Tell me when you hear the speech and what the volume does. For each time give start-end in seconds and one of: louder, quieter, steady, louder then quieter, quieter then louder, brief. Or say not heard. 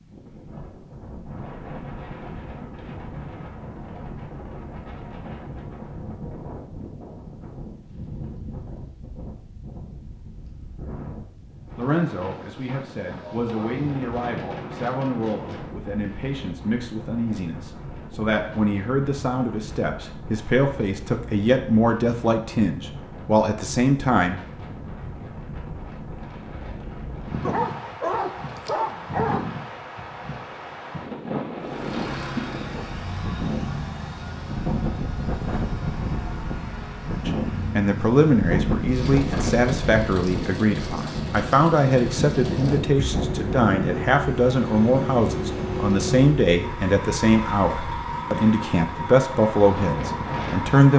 11.8-24.4 louder
37.2-50.9 steady.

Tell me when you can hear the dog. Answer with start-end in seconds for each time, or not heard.
13.2-14.8, 27.4-29.4.